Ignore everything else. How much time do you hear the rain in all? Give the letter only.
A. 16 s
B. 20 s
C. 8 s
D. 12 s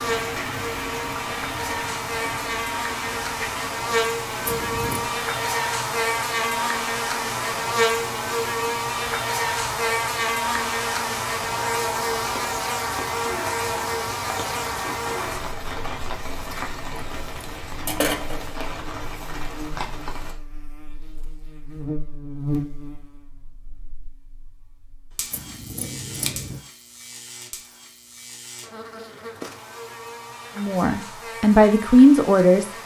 B.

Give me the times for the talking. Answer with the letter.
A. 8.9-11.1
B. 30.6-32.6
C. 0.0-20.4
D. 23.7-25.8
B.